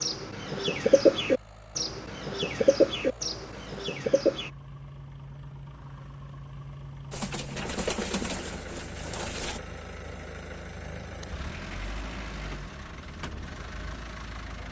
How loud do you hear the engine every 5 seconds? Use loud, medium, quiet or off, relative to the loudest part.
medium, loud, loud.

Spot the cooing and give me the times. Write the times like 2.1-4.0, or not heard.
0.0-4.5, 7.1-9.6.